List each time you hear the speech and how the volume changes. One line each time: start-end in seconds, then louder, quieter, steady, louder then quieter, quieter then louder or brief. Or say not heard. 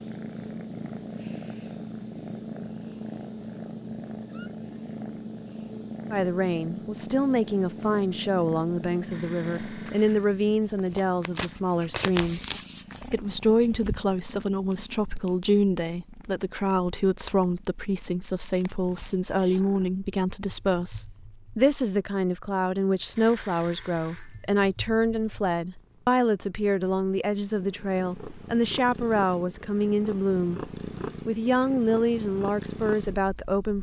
6.1-33.7 steady.